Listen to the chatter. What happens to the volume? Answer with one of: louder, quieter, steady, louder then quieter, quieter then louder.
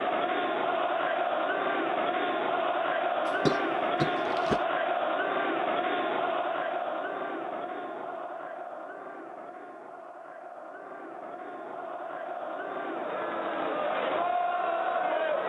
quieter then louder.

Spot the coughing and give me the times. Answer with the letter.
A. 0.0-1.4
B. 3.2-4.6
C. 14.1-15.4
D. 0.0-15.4
B.